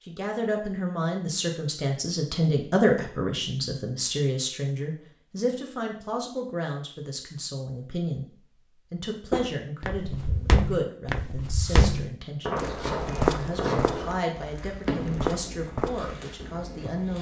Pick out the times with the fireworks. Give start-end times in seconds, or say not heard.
11.6-17.1.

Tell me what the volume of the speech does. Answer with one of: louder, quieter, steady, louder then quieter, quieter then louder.
quieter.